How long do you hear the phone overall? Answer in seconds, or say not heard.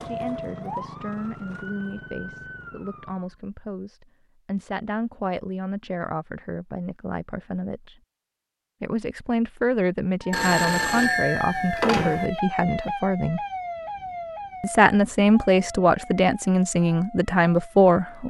2 s.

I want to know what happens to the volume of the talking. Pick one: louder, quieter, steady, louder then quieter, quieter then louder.
louder.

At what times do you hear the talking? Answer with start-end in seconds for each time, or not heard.
0.0-8.0, 8.8-13.4, 14.6-18.2.